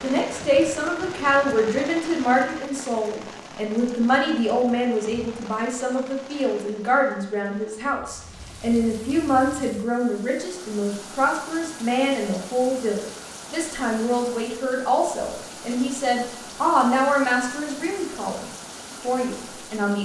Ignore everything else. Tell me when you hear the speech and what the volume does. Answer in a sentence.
The speech can be heard from 0.0 to 20.0 s, at a steady volume.